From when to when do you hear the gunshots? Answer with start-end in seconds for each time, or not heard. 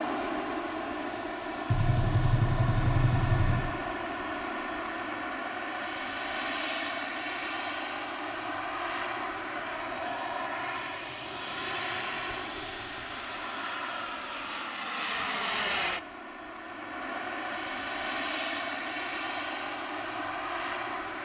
1.7-3.7.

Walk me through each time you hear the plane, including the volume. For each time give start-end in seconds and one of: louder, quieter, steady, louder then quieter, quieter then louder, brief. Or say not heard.
0.0-21.2 steady.